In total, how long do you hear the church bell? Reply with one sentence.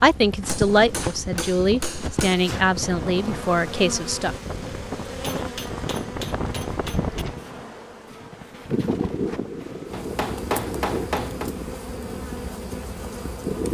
The church bell can't be heard in this clip.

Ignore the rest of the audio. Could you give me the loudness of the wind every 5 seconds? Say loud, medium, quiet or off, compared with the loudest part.
medium, loud, loud.